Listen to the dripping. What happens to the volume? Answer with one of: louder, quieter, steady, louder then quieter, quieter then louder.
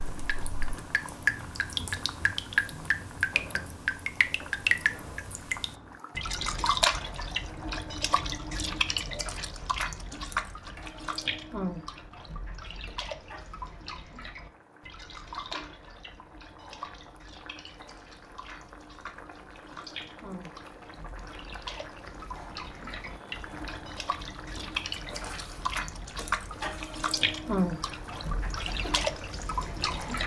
quieter then louder.